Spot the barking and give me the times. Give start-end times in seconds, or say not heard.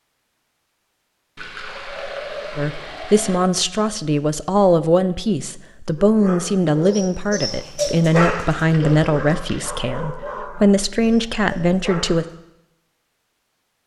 6.0-12.3.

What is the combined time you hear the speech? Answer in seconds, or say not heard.
10 s.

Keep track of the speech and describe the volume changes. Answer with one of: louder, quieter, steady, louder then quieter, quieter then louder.
steady.